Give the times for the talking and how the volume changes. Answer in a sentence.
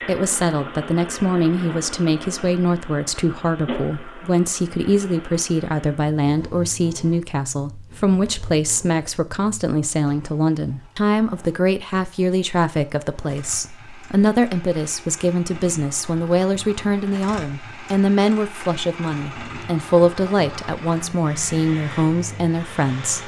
You can hear the talking from 0.1 to 23.2 s, at a steady volume.